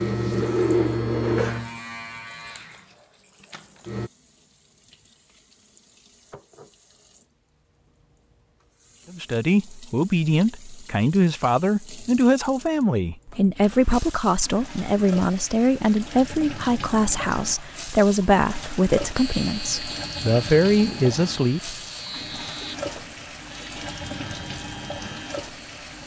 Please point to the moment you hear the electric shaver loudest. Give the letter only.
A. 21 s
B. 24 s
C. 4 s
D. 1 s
D.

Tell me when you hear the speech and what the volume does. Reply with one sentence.
You can hear the speech from 9.1 to 21.8 s, at a steady volume.